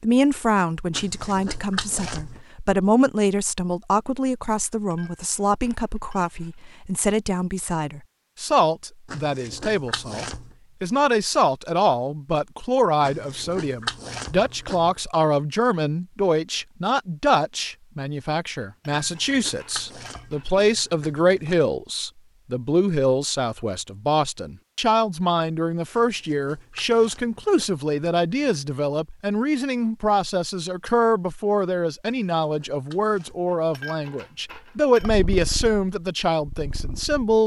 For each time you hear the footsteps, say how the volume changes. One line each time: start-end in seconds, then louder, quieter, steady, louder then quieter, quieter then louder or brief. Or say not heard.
not heard.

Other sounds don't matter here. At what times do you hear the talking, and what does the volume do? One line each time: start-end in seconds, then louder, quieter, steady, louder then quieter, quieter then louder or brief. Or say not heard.
0.0-37.4 steady.